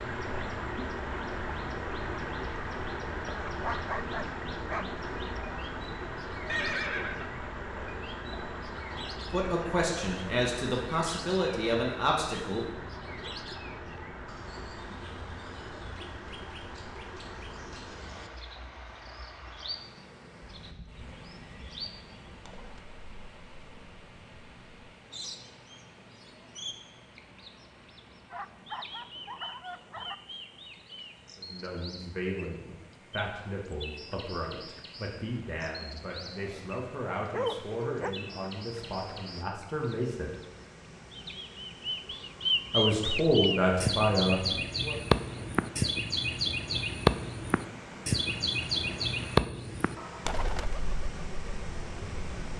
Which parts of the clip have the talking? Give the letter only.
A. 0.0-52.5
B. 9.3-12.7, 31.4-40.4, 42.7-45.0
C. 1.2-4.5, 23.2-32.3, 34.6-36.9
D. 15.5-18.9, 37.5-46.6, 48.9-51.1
B.